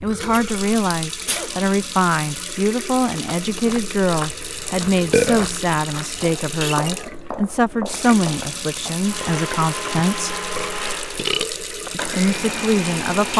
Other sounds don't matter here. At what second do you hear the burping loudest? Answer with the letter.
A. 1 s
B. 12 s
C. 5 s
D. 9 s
C.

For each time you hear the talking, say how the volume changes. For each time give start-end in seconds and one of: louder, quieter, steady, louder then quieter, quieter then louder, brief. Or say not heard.
0.0-10.4 steady
11.9-13.3 brief.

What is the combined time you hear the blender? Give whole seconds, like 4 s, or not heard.
4 s.